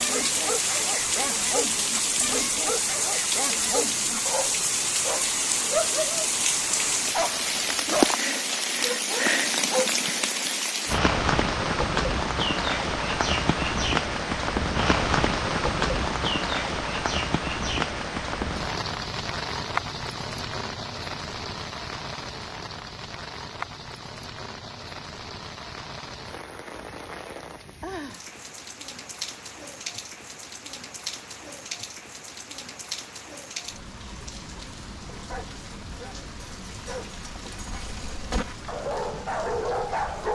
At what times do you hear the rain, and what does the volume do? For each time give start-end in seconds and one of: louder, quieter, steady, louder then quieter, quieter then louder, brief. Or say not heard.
0.0-40.2 quieter.